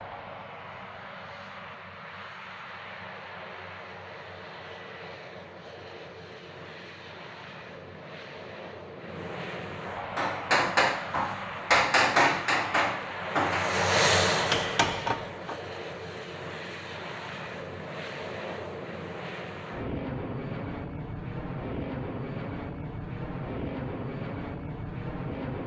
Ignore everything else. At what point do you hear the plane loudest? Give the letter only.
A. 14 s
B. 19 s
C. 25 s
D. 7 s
A.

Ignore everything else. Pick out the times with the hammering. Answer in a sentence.
You can hear the hammering from 10.2 to 15.6 s.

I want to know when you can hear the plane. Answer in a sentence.
You can hear the plane from 0.0 to 25.6 s.